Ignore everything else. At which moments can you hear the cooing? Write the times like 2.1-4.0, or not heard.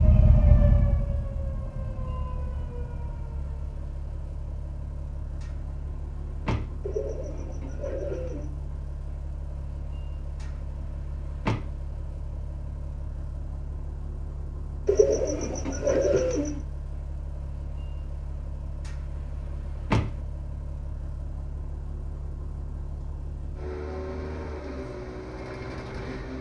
6.8-8.5, 14.8-16.6.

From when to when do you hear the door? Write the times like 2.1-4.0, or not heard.
5.4-6.8, 11.2-11.6, 19.6-20.1.